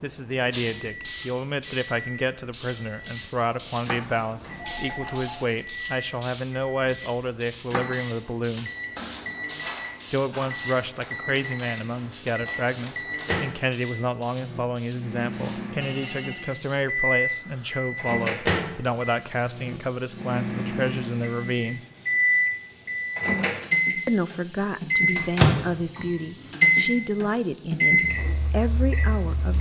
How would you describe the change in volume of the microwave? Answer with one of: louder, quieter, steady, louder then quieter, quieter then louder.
louder.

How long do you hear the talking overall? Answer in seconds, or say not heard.
26 s.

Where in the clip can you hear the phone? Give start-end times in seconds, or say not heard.
4.5-5.4, 15.8-16.5.